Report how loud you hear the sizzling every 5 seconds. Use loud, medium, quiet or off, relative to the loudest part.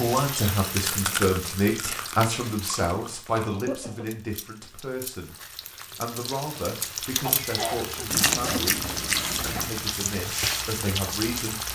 medium, loud, loud.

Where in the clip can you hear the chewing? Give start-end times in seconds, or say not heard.
0.8-3.5, 8.1-9.7.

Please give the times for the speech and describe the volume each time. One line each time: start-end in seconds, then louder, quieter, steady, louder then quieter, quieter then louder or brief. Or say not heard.
0.0-11.7 quieter.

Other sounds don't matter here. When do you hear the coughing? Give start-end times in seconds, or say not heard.
3.5-4.2, 7.2-8.1.